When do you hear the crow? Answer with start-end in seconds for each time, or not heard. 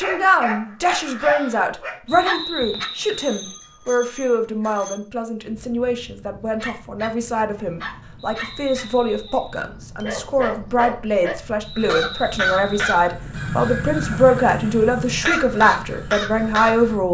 0.0-1.8, 11.8-16.9.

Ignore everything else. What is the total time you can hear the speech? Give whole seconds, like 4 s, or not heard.
17 s.